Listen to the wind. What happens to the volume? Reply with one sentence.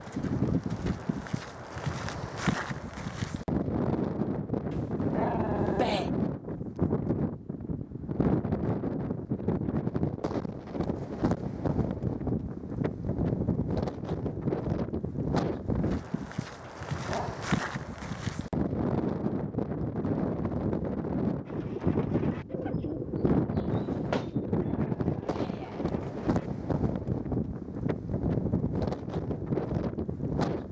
The volume of the wind stays about the same.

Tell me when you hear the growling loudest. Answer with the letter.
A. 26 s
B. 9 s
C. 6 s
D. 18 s
C.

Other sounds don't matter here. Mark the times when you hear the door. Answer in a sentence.
The door can be heard from 23.8 to 24.3 s.